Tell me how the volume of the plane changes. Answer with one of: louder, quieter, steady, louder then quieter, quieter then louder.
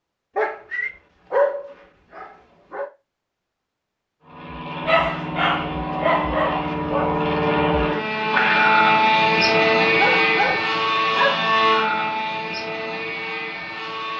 louder then quieter.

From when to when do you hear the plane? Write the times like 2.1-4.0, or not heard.
4.2-14.1.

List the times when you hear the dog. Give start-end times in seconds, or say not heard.
0.3-2.9, 4.8-7.2, 9.8-11.5.